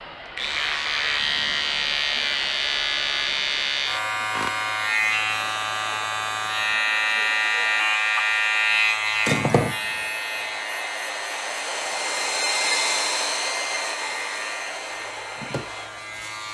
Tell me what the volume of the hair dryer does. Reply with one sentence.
The volume of the hair dryer goes up.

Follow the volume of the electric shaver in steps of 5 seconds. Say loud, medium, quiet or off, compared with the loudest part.
loud, loud, medium, quiet.